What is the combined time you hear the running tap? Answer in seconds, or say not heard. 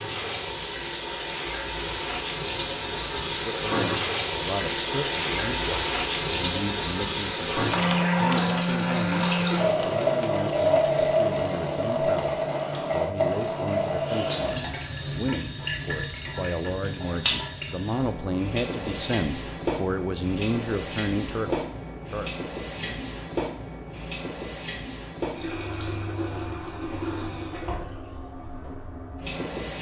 30 s.